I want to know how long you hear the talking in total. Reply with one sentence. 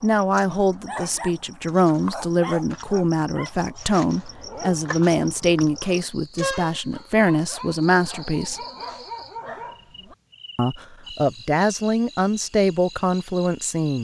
You can hear the talking for 12 seconds altogether.